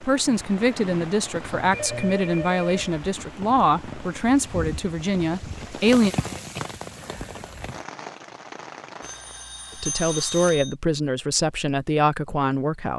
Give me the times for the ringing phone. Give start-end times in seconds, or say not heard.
0.2-3.0, 9.0-10.8.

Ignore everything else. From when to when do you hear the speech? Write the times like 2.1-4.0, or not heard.
0.0-6.2, 9.8-12.9.